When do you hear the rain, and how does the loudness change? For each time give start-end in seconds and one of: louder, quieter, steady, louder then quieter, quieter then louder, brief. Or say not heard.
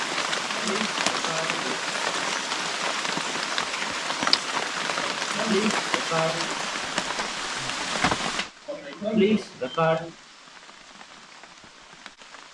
0.0-12.4 quieter.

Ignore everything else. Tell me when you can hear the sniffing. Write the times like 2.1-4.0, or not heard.
0.4-1.8, 5.0-6.5, 8.7-10.1.